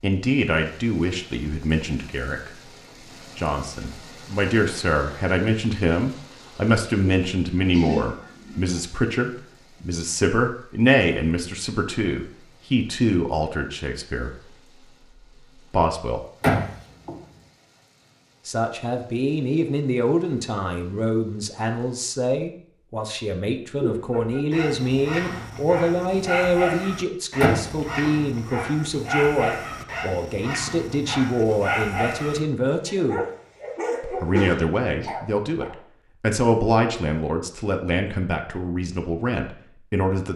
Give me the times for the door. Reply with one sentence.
You can hear the door from 16.4 to 17.1 s and from 27.4 to 28.1 s.